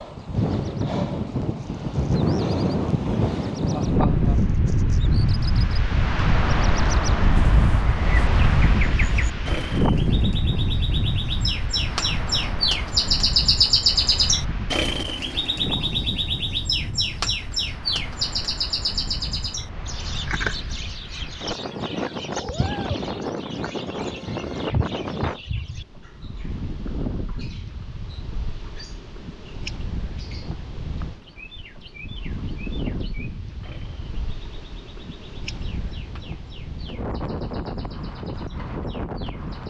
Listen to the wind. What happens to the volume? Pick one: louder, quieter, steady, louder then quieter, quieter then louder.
quieter.